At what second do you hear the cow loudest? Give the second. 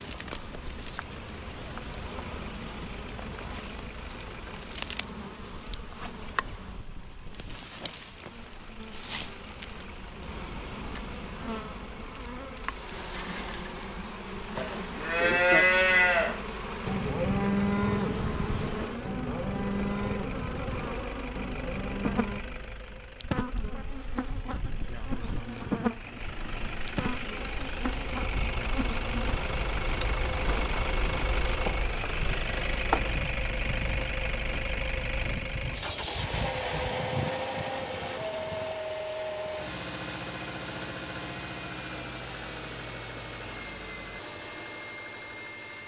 16 s.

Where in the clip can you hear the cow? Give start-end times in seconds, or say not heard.
14.6-22.4.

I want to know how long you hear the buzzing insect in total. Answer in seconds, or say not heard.
39 s.